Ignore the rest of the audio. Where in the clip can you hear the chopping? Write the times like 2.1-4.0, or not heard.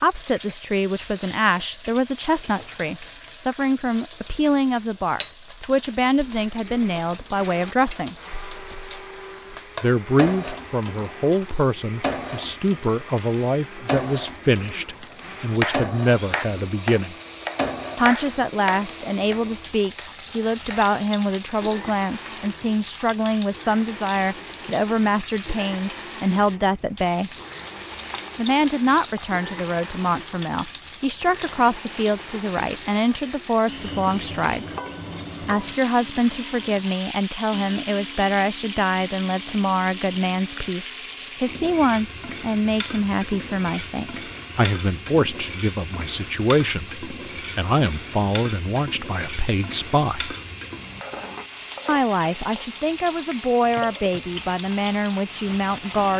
15.1-20.9.